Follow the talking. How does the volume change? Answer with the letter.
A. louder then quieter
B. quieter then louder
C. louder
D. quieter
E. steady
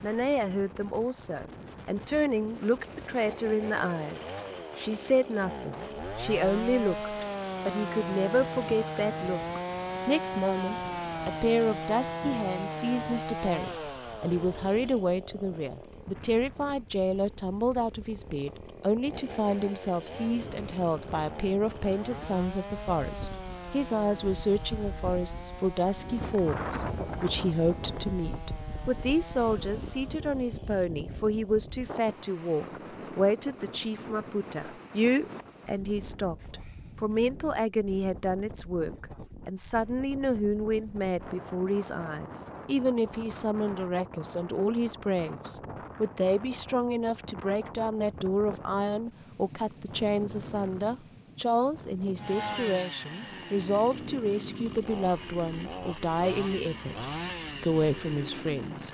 E.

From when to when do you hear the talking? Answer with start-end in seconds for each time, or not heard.
0.0-58.8.